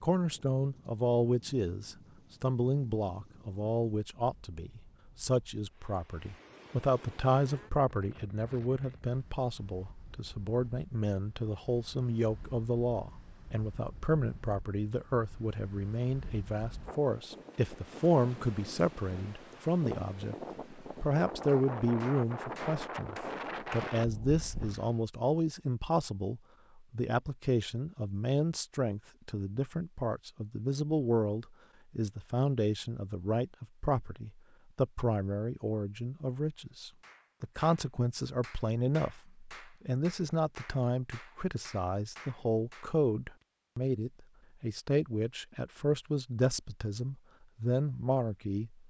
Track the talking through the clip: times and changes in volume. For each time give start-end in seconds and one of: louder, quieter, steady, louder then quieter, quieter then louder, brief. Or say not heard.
0.0-48.8 steady.